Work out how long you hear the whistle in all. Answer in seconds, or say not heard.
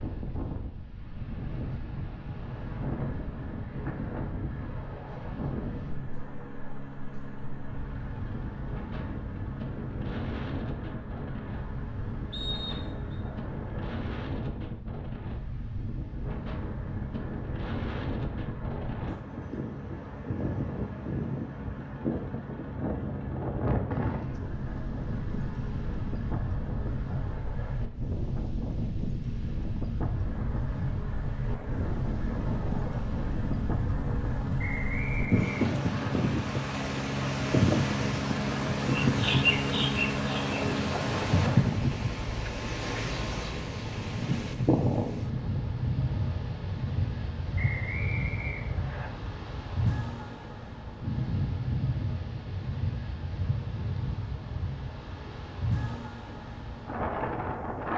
4 s.